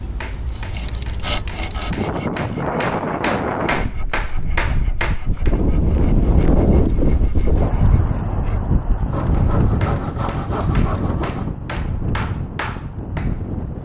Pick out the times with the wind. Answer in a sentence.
The wind can be heard from 0.0 to 13.8 s.